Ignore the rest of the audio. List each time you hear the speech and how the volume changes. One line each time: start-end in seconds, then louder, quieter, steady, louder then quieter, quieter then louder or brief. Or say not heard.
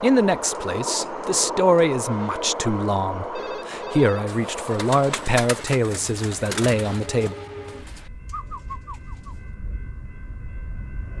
0.0-7.3 steady.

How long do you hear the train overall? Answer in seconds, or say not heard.
11 s.